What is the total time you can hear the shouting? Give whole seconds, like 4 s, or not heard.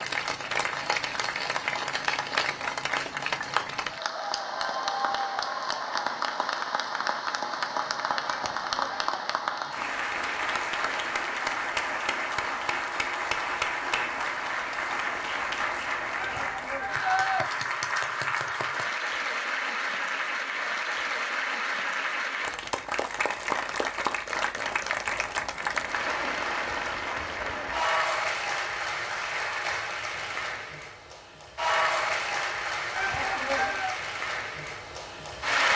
3 s.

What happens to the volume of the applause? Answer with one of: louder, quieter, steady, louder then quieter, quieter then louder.
steady.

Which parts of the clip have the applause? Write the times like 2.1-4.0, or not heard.
0.0-35.7.